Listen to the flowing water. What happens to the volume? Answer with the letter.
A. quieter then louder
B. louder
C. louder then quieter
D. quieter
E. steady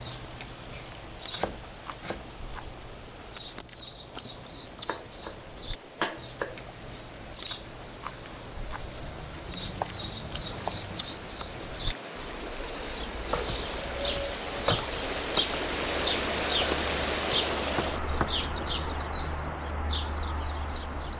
B.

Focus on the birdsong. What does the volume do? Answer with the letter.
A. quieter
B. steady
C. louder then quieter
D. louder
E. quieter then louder
D.